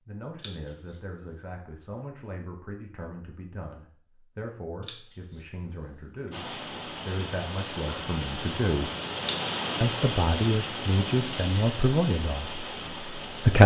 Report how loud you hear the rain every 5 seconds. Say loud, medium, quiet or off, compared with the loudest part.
off, loud, loud.